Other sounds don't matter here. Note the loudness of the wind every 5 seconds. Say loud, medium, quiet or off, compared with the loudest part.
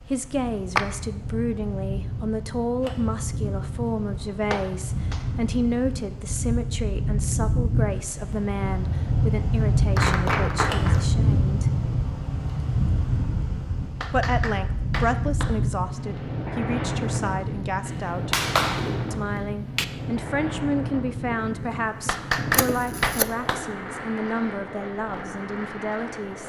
medium, loud, loud, loud, medium, medium.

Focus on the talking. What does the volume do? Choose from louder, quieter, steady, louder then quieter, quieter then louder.
steady.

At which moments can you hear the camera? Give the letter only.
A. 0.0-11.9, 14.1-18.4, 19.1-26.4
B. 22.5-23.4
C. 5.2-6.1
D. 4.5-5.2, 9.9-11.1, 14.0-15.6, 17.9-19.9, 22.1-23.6
B.